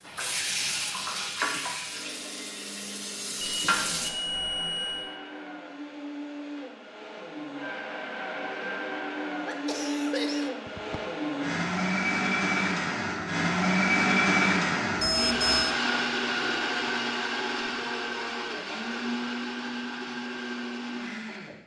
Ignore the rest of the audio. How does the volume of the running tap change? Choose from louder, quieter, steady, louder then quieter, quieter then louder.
quieter then louder.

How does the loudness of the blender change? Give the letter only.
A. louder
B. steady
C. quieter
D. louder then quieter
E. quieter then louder
D.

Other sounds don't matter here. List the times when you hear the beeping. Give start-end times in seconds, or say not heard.
3.4-5.1, 14.9-15.8.